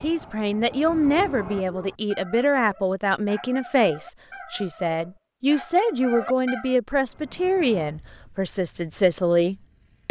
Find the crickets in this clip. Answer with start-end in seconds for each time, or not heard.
not heard.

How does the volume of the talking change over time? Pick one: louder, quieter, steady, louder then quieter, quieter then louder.
steady.